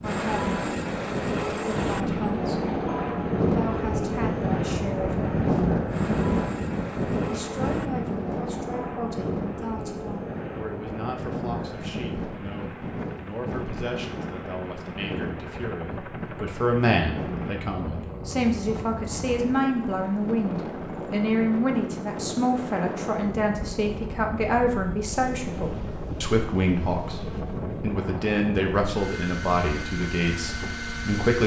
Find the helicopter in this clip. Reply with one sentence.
The helicopter can be heard from 0.0 to 31.4 s.